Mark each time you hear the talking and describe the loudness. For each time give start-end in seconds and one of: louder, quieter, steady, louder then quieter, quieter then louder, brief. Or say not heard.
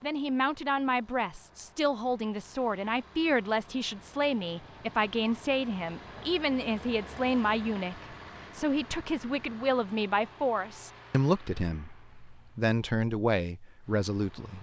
0.0-14.5 steady.